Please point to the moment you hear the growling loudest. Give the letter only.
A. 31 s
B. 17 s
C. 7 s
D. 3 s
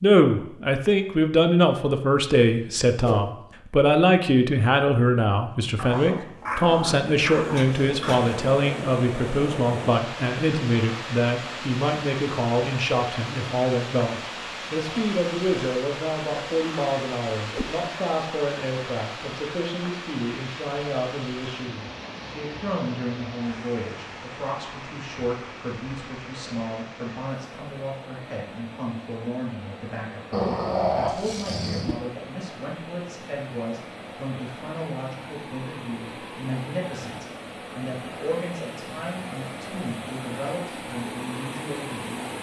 A.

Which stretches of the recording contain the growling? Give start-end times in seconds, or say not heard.
5.8-8.3, 30.3-31.9.